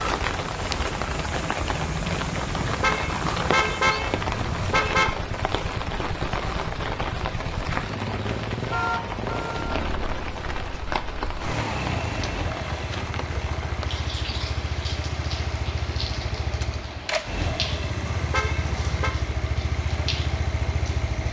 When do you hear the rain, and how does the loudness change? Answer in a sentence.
The rain can be heard from 0.0 to 21.2 s, getting quieter.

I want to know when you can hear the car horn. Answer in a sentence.
You can hear the car horn from 2.5 to 5.1 s, from 8.7 to 9.8 s and from 18.0 to 19.1 s.